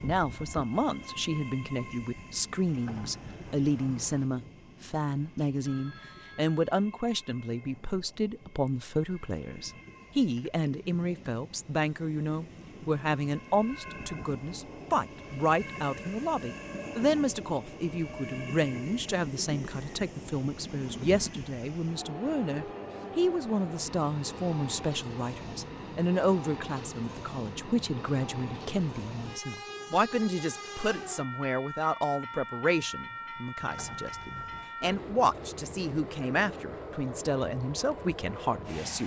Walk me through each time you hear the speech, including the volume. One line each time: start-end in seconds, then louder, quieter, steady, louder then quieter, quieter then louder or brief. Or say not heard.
0.0-39.0 steady.